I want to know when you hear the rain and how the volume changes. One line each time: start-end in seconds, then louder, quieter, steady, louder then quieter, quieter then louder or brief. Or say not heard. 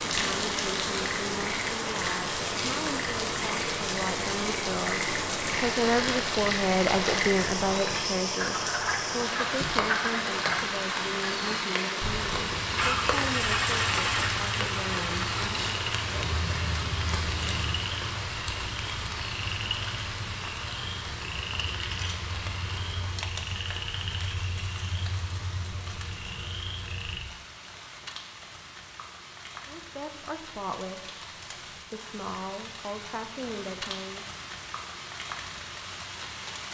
0.0-36.6 quieter.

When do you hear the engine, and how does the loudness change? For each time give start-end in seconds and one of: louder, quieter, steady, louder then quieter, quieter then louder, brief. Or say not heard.
12.5-17.8 quieter.